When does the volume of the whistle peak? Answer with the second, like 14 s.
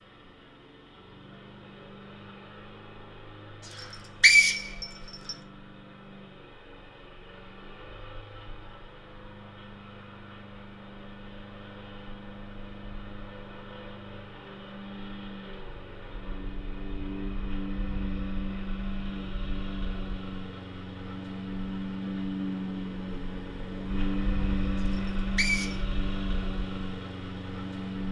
4 s.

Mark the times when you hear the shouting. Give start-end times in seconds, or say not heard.
not heard.